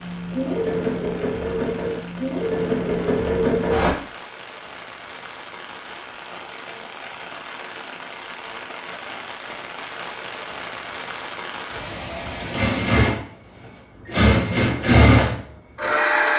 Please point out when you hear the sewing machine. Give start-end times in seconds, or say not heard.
0.0-4.0, 12.4-16.3.